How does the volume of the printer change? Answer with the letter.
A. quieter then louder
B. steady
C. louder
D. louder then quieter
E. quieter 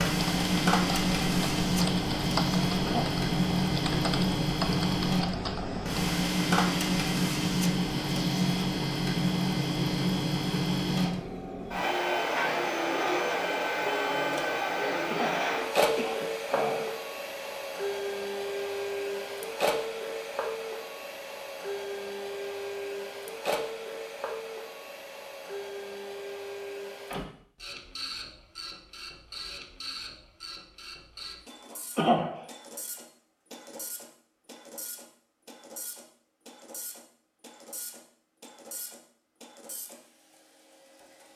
E.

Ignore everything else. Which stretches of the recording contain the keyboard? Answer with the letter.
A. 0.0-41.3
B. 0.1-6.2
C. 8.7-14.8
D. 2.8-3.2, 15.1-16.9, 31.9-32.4
B.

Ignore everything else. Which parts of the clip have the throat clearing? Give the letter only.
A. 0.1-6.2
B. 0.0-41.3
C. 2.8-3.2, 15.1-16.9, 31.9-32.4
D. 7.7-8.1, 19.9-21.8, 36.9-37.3
C.